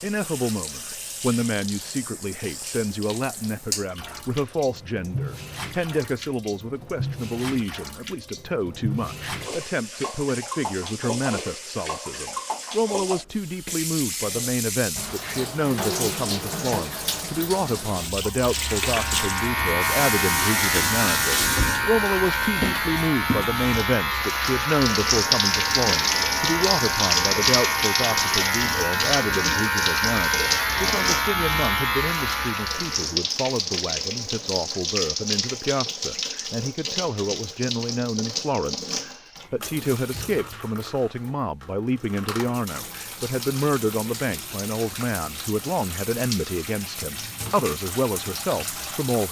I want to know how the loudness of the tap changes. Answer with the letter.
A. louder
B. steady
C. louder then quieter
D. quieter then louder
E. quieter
C.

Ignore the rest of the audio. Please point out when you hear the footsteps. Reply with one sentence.
You can't hear the footsteps here.